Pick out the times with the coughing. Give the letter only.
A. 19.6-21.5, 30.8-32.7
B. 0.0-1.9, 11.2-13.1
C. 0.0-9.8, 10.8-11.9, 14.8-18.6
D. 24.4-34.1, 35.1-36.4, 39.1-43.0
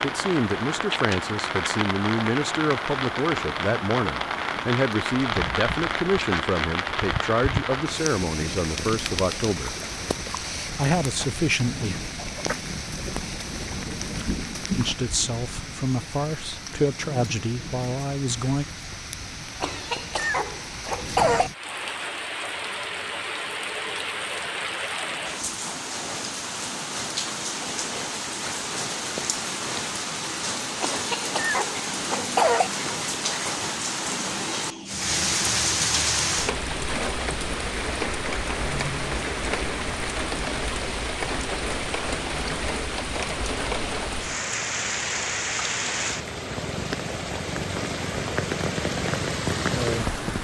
A.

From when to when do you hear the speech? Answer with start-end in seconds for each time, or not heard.
0.0-9.8, 10.8-11.9, 14.8-18.6.